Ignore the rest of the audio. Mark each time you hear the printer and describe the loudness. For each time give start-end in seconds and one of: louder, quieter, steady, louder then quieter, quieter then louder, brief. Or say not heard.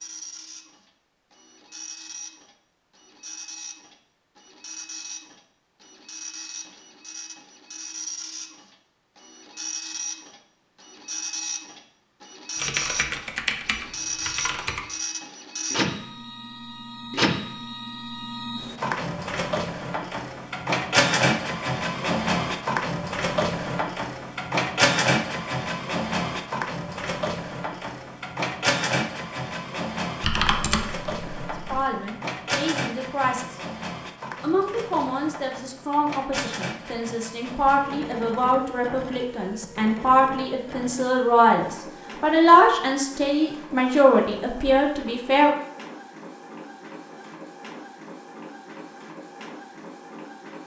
0.0-50.6 louder then quieter.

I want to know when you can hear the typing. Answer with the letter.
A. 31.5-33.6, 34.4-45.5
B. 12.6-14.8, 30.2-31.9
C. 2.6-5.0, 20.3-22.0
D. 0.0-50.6
B.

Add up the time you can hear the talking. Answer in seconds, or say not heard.
13 s.